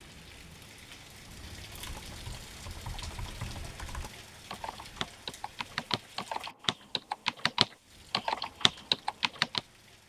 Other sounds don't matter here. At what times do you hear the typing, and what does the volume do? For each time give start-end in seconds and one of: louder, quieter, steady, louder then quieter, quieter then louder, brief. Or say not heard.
1.7-9.6 louder.